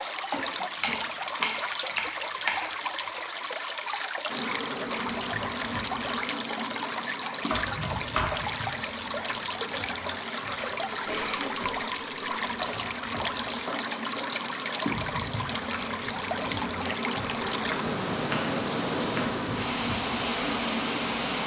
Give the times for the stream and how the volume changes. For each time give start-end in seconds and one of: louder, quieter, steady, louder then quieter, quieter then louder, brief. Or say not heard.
0.0-21.4 steady.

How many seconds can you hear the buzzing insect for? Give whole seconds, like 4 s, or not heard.
17 s.